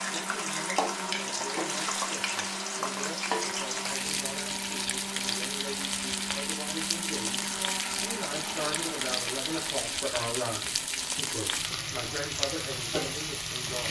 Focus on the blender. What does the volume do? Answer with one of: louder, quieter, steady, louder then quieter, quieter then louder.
steady.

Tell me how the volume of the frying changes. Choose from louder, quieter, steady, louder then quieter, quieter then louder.
steady.